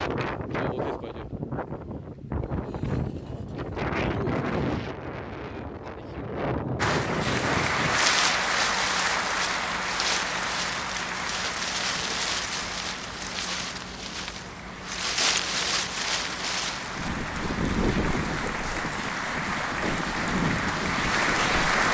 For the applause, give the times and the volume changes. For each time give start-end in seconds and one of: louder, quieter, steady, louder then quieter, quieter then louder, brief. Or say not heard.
6.8-21.8 quieter then louder.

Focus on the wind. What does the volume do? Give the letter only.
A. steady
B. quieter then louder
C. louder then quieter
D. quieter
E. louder
A.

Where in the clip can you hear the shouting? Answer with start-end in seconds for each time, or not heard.
not heard.